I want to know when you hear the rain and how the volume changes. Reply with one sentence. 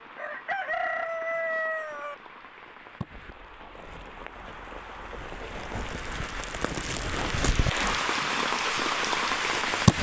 The rain can be heard from 0.0 to 9.9 s, getting louder.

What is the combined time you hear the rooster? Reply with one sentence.
The rooster can be heard for 2 seconds in total.